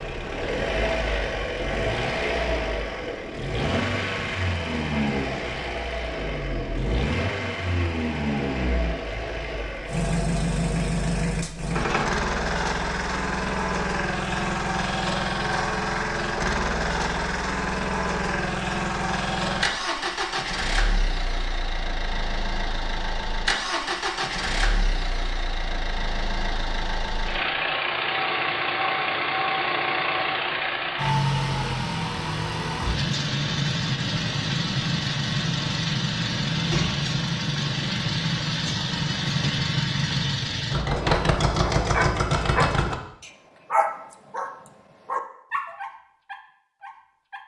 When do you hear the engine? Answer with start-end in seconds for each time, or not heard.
0.0-43.0.